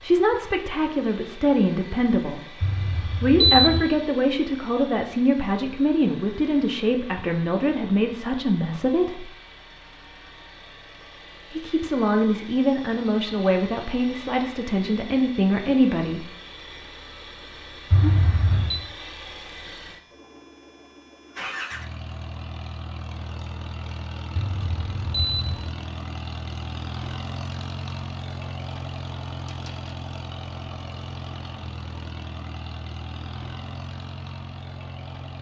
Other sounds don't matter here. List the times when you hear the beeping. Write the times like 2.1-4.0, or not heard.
2.6-3.9, 17.9-18.8, 24.4-25.7.